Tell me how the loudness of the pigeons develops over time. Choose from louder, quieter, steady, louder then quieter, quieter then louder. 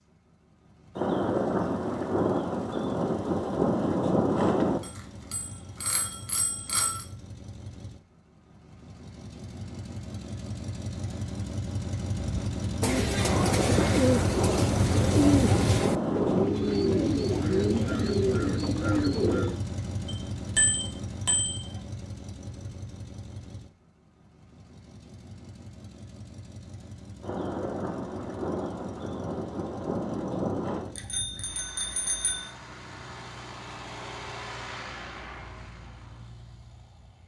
steady.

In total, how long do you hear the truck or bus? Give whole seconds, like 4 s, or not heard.
37 s.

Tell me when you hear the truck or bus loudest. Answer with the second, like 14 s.
15 s.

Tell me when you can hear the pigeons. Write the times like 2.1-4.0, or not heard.
12.4-19.6.